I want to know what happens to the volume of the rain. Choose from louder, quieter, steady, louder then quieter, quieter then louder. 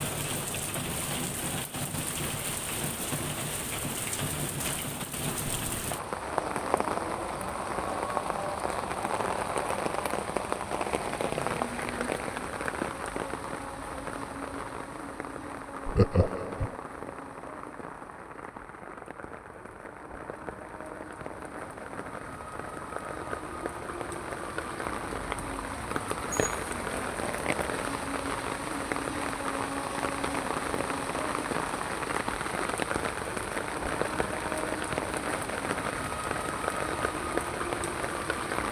quieter then louder.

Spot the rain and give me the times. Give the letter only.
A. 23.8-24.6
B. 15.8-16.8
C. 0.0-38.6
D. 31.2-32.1
C.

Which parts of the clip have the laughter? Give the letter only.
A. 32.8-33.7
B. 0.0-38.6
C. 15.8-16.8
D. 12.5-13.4
C.